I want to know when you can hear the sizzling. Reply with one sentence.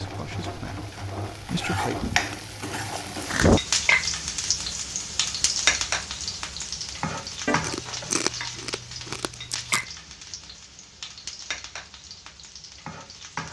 You can hear the sizzling from 0.0 to 13.4 s.